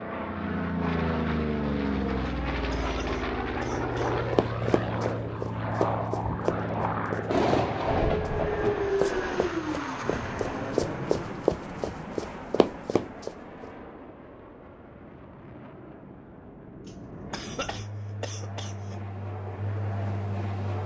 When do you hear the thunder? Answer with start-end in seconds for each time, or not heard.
7.2-8.9.